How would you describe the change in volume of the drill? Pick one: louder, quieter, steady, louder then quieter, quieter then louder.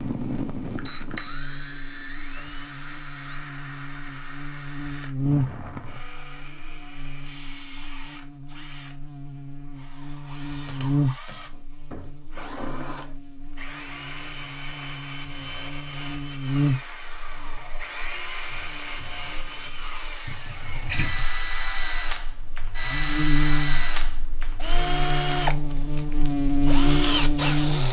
quieter then louder.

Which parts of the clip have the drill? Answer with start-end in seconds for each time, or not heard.
0.0-27.8.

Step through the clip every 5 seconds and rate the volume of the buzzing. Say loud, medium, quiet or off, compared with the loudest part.
quiet, medium, medium, medium, medium, loud.